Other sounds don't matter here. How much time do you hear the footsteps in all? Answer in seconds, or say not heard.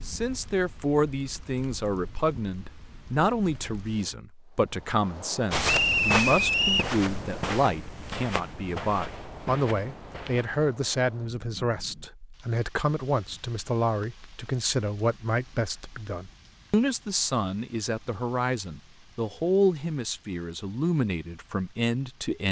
5 s.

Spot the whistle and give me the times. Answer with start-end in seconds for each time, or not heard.
5.7-7.0.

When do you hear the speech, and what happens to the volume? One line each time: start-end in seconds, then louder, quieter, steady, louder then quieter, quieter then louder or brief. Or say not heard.
0.1-22.4 steady.